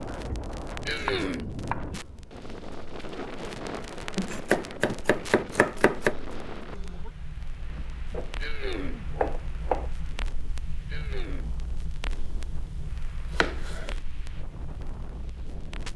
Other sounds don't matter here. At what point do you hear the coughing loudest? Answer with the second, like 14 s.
1 s.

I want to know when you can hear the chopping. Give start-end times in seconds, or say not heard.
0.1-2.0, 4.2-6.2, 8.1-9.9, 12.1-13.9.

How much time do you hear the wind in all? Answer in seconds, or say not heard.
16 s.